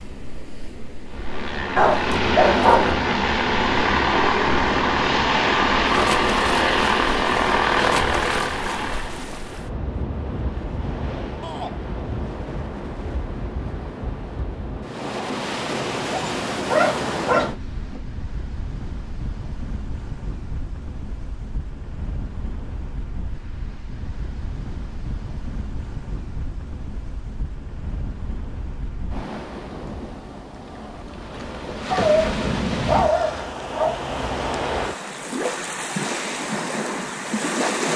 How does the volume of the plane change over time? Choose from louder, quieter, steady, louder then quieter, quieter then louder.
steady.